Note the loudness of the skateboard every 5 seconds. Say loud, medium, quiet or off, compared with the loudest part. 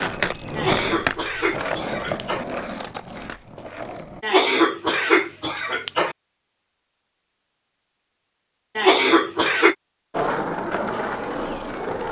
loud, off, loud.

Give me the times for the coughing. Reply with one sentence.
You can hear the coughing from 0.6 to 2.5 s, from 4.2 to 6.2 s and from 8.8 to 9.8 s.